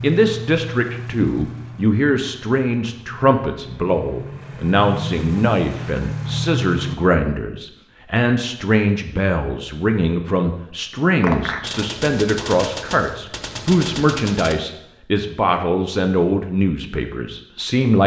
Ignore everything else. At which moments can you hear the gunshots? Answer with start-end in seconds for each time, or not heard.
11.2-14.6.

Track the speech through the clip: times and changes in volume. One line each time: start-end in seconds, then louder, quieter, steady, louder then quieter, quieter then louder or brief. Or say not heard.
0.0-18.0 steady.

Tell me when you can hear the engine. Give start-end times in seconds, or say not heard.
0.0-7.0.